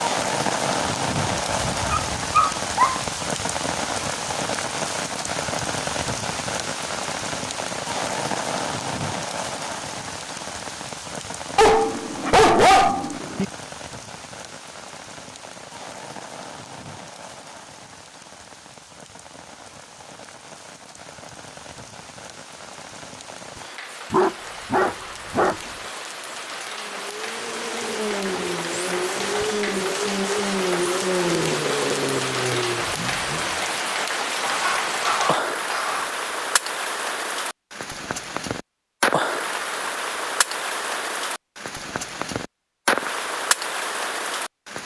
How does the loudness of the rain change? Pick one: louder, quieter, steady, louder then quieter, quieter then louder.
quieter then louder.